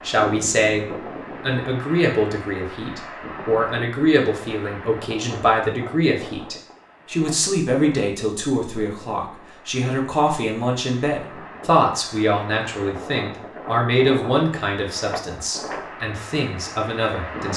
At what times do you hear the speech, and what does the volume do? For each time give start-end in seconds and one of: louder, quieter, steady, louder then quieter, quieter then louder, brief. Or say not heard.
0.1-17.5 steady.